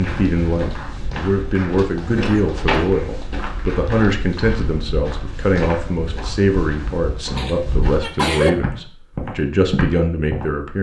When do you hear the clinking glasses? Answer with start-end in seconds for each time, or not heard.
not heard.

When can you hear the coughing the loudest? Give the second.
8 s.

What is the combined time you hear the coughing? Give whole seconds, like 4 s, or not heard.
2 s.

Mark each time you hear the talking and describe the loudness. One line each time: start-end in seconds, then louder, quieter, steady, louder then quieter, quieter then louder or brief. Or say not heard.
0.0-10.7 steady.